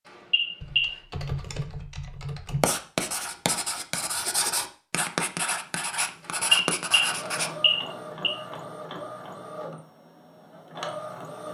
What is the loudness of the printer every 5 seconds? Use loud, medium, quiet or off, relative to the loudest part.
off, loud, loud.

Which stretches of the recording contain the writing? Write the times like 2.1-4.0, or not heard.
2.6-7.5.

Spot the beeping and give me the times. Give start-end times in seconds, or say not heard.
0.1-0.9, 6.2-8.3.